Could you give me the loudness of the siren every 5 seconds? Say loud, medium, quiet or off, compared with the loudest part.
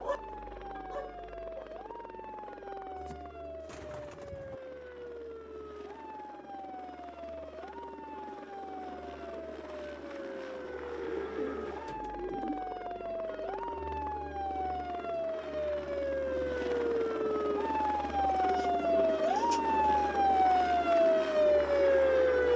quiet, quiet, quiet, medium, loud.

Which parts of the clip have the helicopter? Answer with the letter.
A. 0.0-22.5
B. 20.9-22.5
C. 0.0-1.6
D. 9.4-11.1
A.